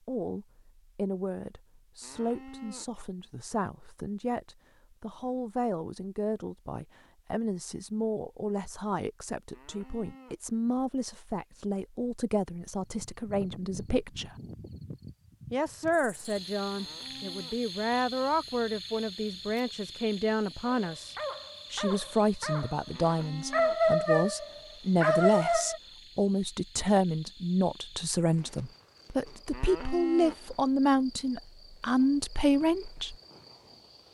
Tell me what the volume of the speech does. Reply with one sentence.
The volume of the speech goes up.